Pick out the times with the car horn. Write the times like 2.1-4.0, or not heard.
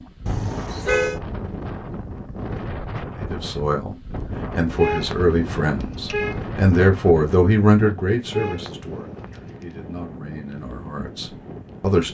0.2-1.2, 4.8-6.4, 8.3-9.6.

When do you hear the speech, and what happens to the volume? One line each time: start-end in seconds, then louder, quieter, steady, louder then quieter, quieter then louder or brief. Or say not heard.
3.1-12.0 louder then quieter.